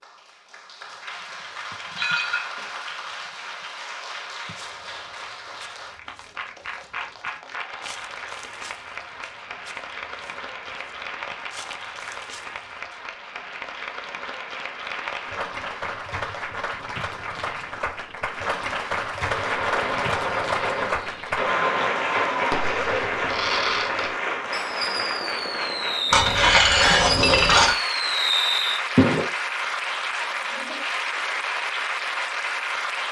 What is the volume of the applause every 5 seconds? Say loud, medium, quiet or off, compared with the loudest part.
medium, medium, medium, loud, loud, loud, loud.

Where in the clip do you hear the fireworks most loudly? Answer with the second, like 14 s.
29 s.